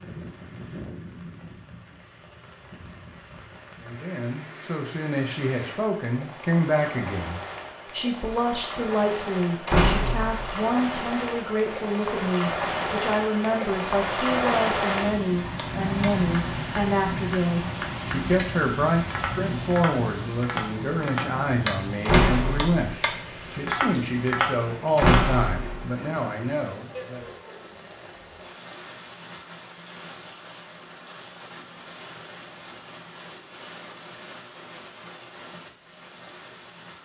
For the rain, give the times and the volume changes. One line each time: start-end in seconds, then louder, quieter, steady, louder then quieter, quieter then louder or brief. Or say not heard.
0.0-37.0 louder then quieter.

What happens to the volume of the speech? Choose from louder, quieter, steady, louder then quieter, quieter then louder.
steady.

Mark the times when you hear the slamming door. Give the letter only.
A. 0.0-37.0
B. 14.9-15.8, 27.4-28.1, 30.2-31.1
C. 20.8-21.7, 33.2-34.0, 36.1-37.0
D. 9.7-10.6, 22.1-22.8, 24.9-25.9
D.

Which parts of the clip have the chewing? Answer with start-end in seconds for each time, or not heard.
not heard.